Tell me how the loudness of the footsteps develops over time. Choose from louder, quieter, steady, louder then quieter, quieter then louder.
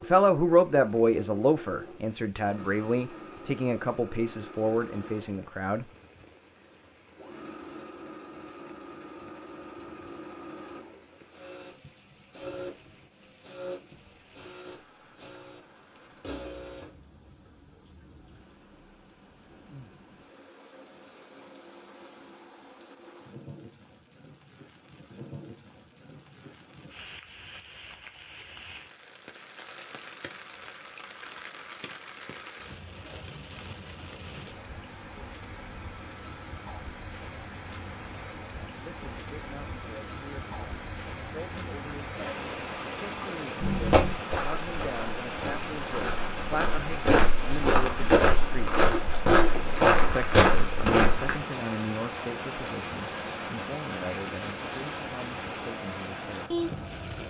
louder.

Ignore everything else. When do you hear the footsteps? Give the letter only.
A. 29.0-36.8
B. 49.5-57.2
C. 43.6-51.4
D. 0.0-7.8
C.